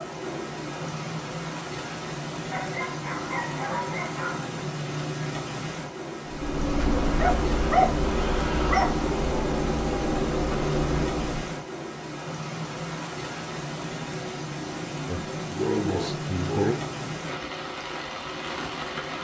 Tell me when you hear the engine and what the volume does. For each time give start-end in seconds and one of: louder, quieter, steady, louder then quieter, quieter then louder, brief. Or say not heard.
6.2-11.6 steady.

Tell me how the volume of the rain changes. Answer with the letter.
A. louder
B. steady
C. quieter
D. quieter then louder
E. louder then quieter
B.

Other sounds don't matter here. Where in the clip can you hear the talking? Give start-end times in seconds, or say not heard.
15.1-16.8.